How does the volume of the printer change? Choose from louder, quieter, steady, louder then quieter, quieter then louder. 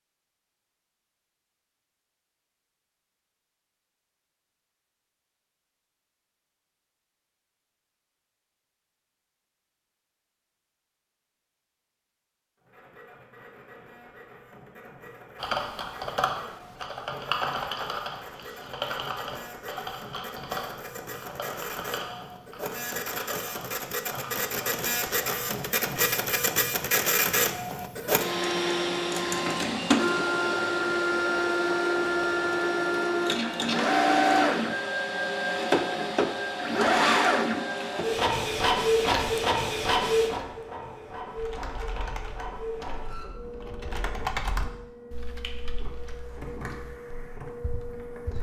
louder then quieter.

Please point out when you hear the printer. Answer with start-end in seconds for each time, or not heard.
12.6-48.3.